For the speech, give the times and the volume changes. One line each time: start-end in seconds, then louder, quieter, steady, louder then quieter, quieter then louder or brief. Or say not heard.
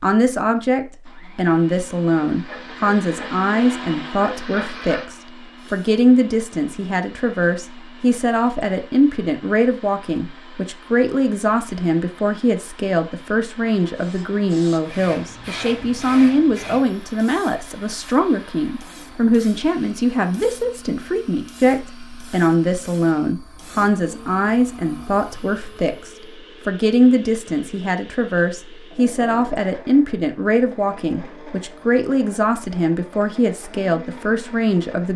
0.0-35.1 steady.